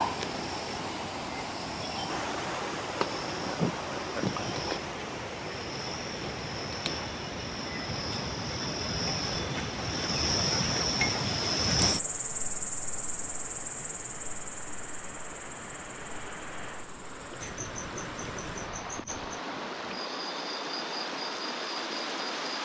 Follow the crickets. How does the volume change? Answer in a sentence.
The loudness of the crickets goes up, then down.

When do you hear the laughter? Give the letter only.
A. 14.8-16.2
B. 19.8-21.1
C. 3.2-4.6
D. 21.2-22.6
C.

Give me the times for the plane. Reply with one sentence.
The plane can't be heard in this clip.